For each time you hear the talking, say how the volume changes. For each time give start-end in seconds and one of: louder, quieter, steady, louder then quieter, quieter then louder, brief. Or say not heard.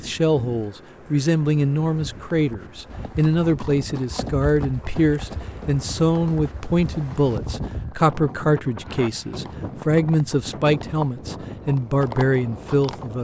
0.0-13.1 steady.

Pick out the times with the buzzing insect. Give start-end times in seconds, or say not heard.
not heard.